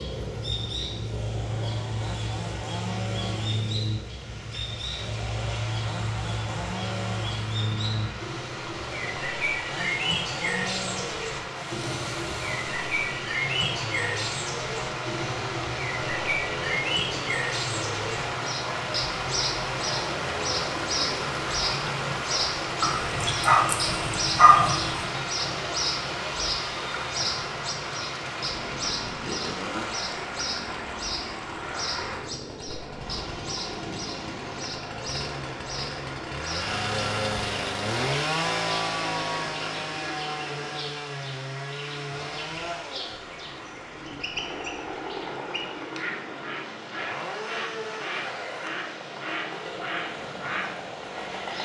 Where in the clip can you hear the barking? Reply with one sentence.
The barking can be heard from 22.8 to 25.1 s.